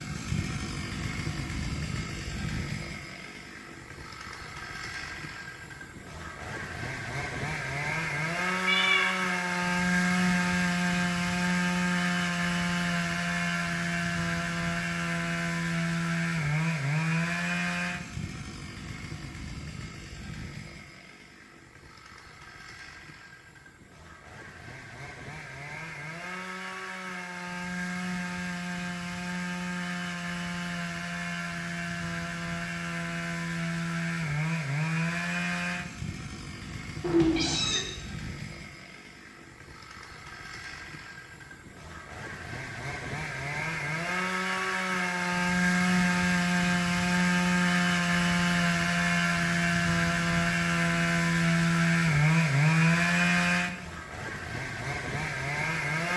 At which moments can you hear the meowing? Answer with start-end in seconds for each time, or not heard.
8.7-9.2, 37.0-37.9.